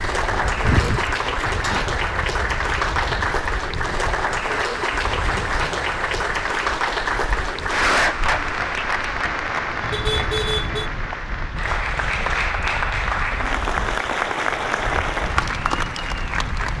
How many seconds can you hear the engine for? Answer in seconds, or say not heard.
2 s.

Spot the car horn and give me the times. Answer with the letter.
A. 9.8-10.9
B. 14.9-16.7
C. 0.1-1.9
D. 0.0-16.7
A.